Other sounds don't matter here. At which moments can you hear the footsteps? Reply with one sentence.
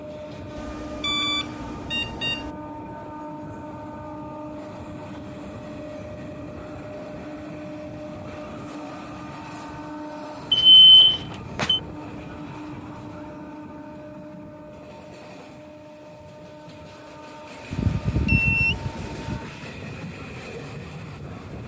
You can't hear the footsteps here.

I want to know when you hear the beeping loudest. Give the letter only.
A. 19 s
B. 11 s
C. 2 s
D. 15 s
B.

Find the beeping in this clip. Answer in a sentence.
You can hear the beeping from 0.6 to 2.5 s, from 10.5 to 11.8 s and from 17.7 to 19.4 s.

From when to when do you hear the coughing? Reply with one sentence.
You can't hear the coughing here.